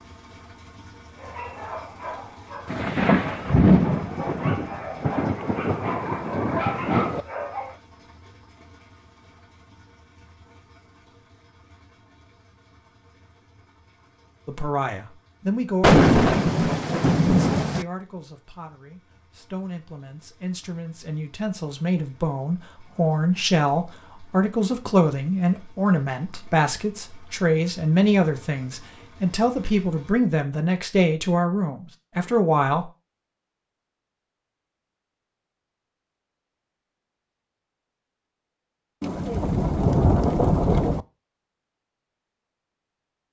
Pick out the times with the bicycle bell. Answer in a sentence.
You can't hear the bicycle bell here.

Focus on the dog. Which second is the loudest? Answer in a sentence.
The loudest moment of the dog is at 7 seconds.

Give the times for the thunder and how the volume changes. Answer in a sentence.
The thunder can be heard from 2.6 to 7.2 s, getting quieter; briefly from 15.8 to 17.9 s; and briefly from 39.0 to 41.0 s.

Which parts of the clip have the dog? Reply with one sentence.
You can hear the dog from 1.1 to 7.8 s.